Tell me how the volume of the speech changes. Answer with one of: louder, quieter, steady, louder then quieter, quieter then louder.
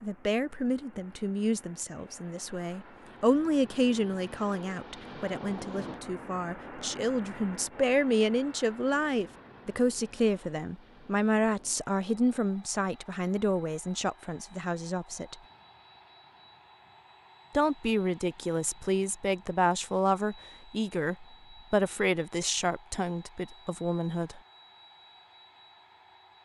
steady.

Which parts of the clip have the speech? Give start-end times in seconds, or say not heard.
0.0-15.3, 17.6-24.4.